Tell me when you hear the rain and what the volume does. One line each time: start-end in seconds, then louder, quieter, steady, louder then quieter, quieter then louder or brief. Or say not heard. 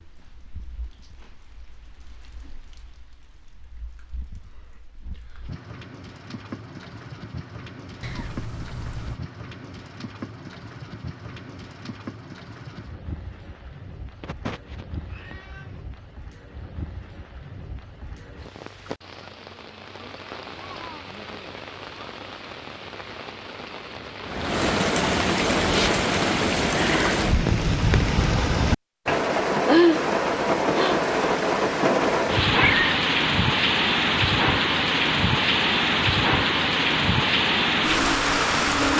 0.0-38.9 louder.